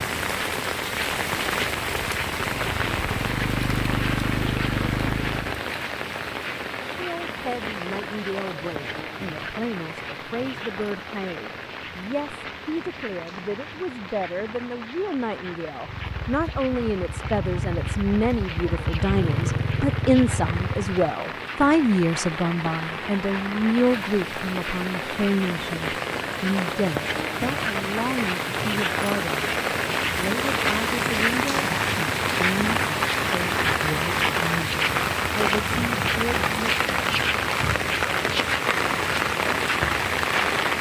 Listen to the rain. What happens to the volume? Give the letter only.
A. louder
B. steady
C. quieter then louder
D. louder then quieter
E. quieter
C.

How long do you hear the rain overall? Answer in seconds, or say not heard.
41 s.